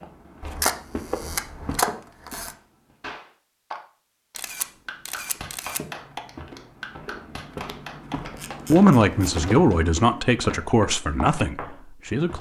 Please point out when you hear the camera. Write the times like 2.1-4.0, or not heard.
0.4-2.5, 4.3-5.8, 8.3-9.3.